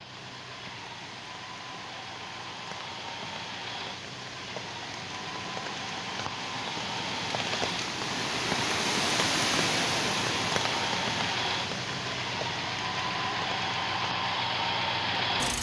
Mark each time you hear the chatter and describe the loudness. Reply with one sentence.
The chatter can't be heard in this clip.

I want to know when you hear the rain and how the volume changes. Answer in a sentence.
The rain can be heard from 0.0 to 15.3 s, getting louder then quieter.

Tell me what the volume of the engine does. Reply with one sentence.
The volume of the engine goes up.